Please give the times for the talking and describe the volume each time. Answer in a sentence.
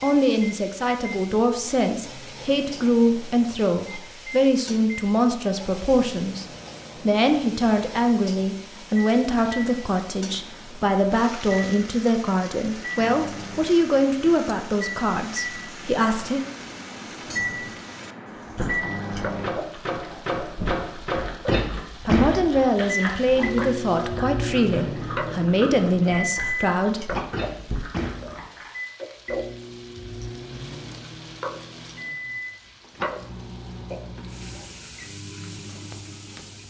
The talking can be heard from 0.0 to 16.4 s, at a steady volume; and from 22.1 to 27.2 s, at a steady volume.